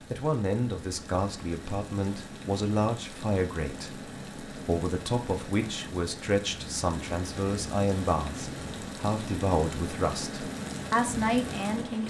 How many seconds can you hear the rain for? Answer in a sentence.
The rain can be heard for 12 seconds in total.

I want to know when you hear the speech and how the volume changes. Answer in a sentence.
The speech can be heard from 0.1 to 12.0 s, at a steady volume.